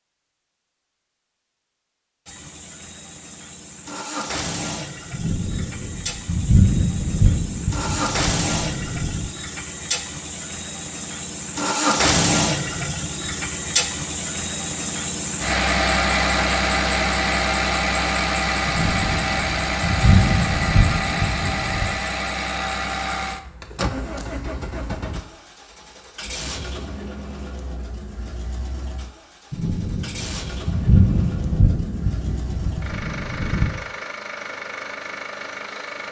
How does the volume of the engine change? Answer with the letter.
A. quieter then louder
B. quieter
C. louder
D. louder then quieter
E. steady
D.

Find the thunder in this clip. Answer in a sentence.
The thunder can be heard from 5.1 to 9.3 s, from 18.6 to 21.9 s and from 29.5 to 33.8 s.